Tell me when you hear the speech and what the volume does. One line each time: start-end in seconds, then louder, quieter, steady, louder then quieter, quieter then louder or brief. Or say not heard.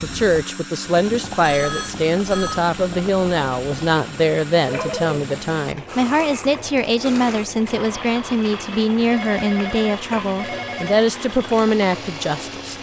0.0-12.7 steady.